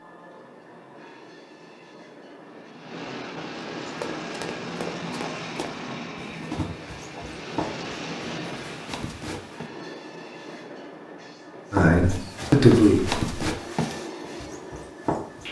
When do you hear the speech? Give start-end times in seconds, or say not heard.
11.7-13.2.